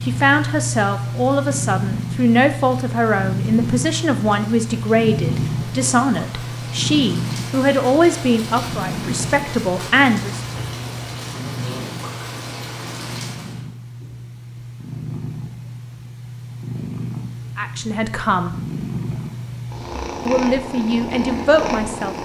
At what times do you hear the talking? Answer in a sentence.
You can hear the talking from 0.0 to 10.4 s, from 17.6 to 18.6 s and from 20.2 to 22.1 s.